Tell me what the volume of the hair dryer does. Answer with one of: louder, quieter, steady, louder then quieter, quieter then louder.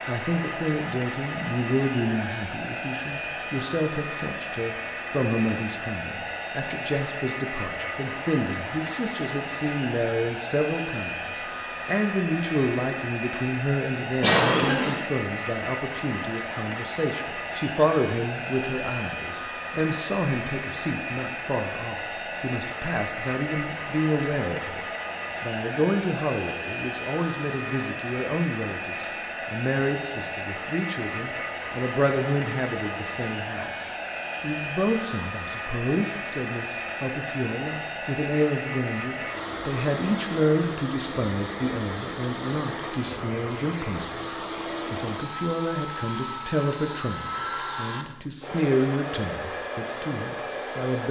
steady.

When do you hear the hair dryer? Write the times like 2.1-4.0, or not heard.
0.0-51.0.